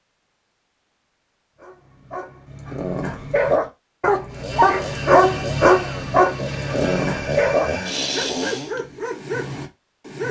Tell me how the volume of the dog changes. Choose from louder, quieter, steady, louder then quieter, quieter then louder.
louder then quieter.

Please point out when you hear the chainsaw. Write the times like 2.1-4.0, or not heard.
4.3-8.8.